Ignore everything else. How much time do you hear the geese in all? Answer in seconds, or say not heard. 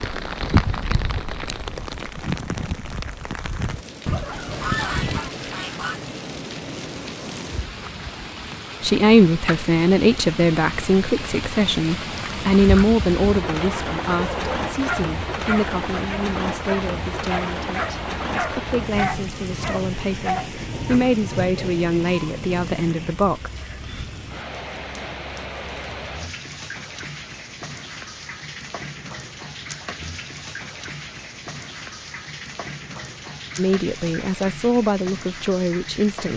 2 s.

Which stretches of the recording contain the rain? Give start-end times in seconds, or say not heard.
0.0-36.3.